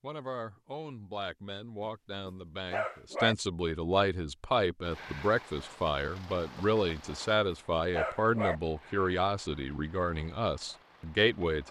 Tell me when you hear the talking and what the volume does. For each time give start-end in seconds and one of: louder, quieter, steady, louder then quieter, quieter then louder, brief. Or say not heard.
0.0-11.6 louder.